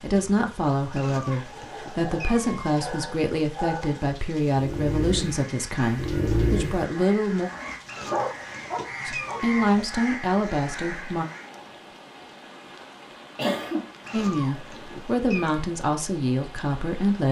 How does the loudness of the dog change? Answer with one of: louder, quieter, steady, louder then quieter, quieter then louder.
louder.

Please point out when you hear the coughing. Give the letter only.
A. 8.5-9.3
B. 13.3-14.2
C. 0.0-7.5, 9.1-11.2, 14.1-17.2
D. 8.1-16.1
B.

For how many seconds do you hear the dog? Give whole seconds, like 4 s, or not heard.
8 s.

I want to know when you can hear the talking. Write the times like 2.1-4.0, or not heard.
0.0-7.5, 9.1-11.2, 14.1-17.2.